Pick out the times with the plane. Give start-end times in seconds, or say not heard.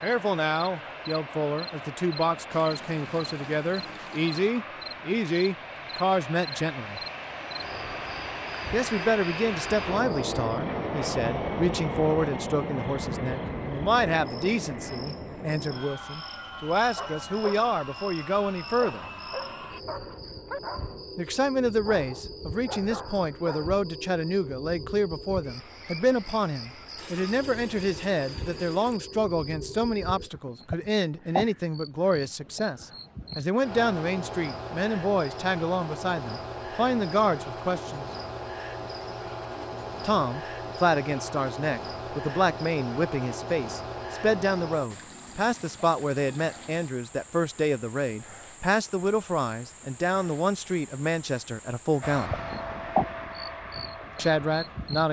0.0-19.8, 52.0-55.0.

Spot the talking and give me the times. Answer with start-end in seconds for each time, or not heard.
0.0-7.0, 8.7-19.1, 21.1-38.1, 40.0-52.4, 54.1-55.0.